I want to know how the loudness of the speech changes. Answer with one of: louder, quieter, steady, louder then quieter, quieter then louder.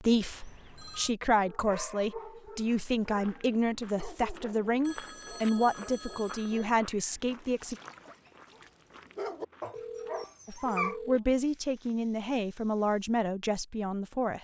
steady.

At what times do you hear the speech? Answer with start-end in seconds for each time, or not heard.
0.0-7.8, 10.4-14.3.